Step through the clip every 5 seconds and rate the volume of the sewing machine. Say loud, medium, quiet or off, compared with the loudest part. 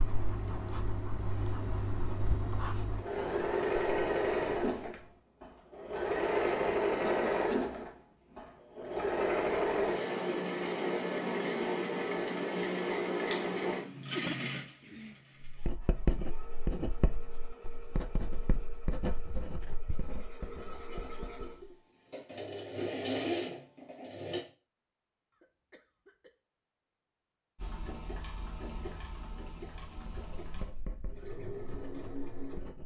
loud, loud, loud, quiet, medium, quiet, quiet.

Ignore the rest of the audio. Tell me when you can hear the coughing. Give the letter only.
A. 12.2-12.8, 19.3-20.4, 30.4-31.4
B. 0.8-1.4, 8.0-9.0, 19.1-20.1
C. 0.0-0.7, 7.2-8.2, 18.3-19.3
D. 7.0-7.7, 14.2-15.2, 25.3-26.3
D.